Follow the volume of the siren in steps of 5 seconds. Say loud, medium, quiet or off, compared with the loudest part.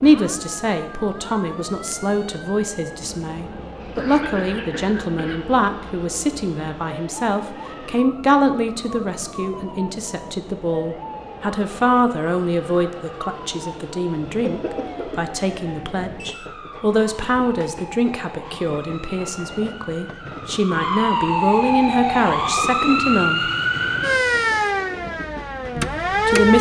quiet, quiet, quiet, quiet, loud, loud.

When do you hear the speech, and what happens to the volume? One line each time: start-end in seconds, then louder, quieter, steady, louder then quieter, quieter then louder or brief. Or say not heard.
0.0-23.5 steady
25.8-26.5 brief.